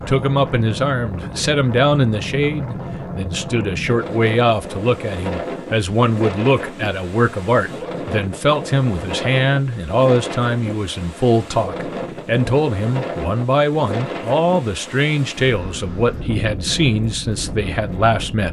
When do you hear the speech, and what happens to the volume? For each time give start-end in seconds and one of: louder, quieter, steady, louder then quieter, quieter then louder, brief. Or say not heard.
0.1-18.4 steady.